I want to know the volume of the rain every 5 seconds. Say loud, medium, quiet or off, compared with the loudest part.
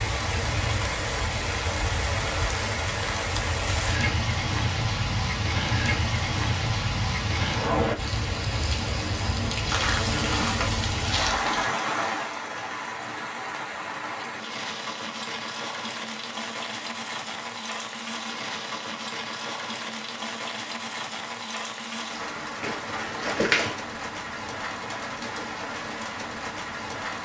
loud, loud, loud, medium, medium, medium.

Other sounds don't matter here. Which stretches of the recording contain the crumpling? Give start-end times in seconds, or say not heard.
9.7-11.7, 22.6-23.8.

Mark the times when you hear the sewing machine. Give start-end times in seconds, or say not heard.
not heard.